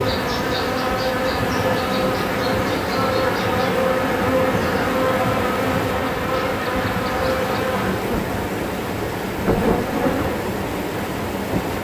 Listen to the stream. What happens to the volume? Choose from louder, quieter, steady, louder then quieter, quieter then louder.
steady.